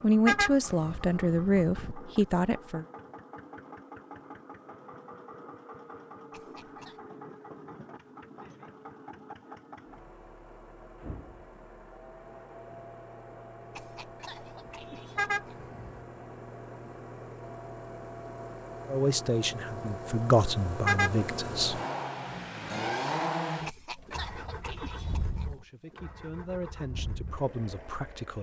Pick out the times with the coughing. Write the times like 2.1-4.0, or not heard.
6.3-7.0, 13.8-15.8, 23.6-25.6.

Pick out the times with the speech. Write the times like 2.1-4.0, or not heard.
0.0-2.9, 18.9-21.8, 25.4-28.3.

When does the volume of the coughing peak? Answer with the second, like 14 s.
24 s.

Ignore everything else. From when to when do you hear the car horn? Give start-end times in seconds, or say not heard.
0.2-1.9, 15.2-16.0, 20.9-21.3.